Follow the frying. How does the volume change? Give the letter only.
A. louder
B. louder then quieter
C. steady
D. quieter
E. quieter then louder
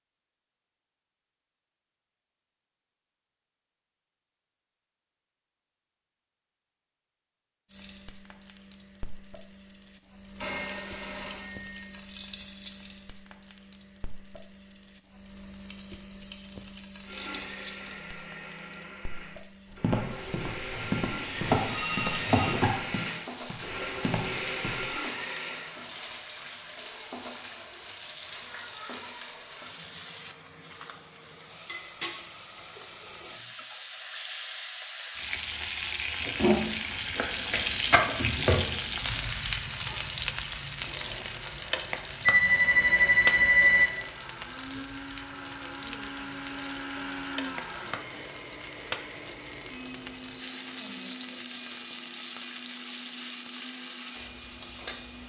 B.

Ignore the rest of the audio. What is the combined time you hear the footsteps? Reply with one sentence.
You can hear the footsteps for 5 seconds altogether.